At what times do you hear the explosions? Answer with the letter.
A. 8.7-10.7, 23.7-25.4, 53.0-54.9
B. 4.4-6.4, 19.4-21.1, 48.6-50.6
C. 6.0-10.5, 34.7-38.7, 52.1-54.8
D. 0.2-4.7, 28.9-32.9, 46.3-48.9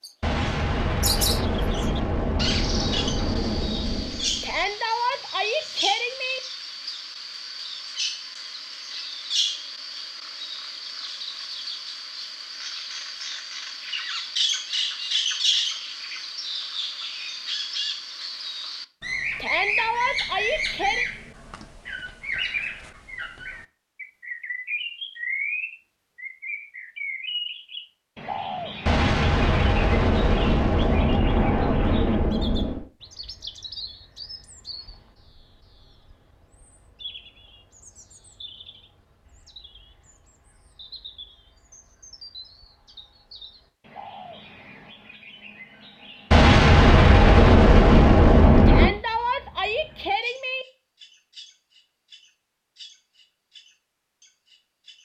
D.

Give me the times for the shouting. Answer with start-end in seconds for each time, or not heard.
4.4-6.4, 19.4-21.1, 48.6-50.6.